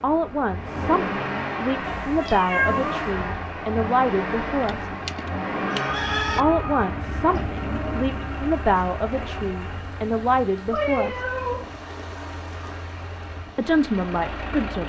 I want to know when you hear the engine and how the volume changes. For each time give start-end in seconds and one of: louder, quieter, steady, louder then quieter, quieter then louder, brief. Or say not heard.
0.0-14.8 quieter.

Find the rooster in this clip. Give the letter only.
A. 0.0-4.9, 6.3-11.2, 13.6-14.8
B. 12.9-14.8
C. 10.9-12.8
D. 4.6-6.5
D.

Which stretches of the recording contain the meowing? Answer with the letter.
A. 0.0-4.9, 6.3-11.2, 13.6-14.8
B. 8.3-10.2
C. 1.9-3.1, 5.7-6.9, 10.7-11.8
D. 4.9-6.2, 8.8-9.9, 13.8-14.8
C.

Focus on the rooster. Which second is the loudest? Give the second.
6 s.